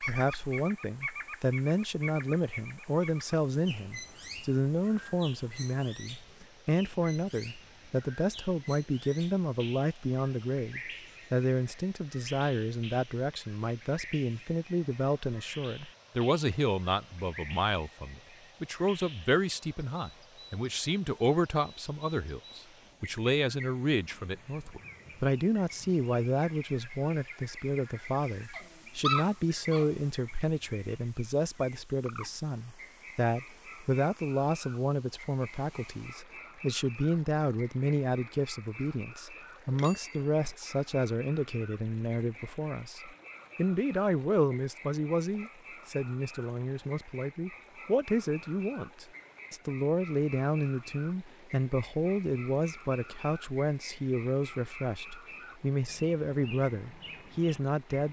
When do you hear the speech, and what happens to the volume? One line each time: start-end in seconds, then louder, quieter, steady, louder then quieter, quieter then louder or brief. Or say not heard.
0.0-58.0 steady.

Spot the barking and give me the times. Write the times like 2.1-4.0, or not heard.
28.5-29.9.